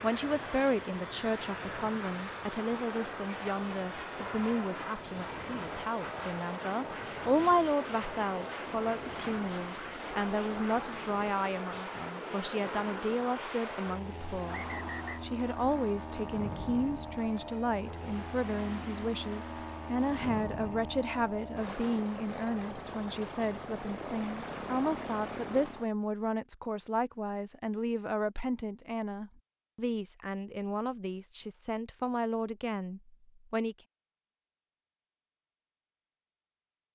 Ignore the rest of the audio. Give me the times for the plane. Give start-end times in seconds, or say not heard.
0.0-25.9.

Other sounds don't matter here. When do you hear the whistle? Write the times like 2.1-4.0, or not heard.
14.4-15.2.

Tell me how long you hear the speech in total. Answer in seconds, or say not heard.
34 s.